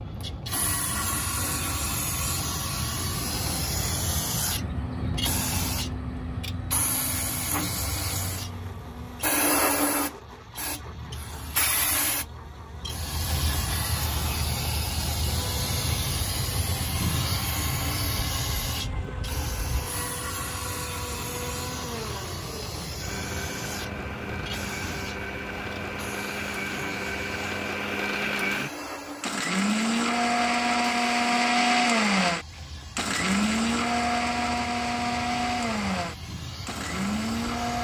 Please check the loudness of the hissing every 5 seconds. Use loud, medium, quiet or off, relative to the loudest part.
loud, loud, loud, loud, medium, medium, quiet, medium.